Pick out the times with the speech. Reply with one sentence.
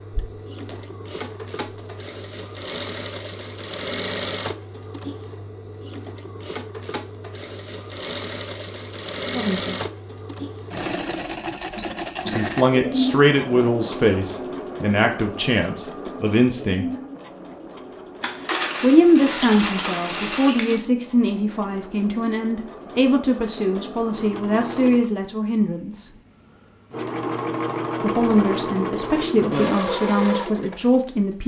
The speech can be heard from 9.3 to 9.8 s, from 12.3 to 16.9 s, from 18.8 to 26.1 s and from 28.0 to 31.4 s.